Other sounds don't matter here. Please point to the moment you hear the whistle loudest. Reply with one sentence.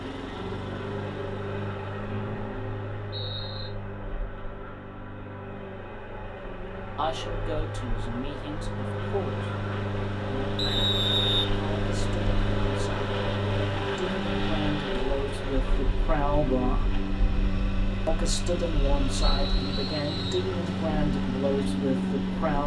The loudest moment of the whistle is at 11 seconds.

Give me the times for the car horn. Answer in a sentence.
You can't hear the car horn here.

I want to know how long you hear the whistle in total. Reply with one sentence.
You can hear the whistle for 4 seconds altogether.